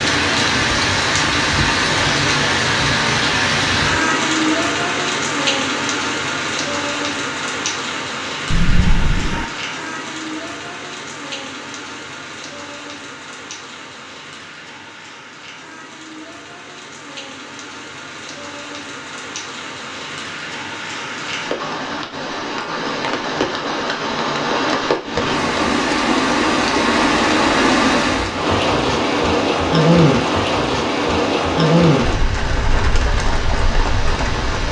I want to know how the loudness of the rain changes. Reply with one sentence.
The volume of the rain goes down, then up.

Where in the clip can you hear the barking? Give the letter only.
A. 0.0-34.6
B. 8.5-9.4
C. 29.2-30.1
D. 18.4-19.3
B.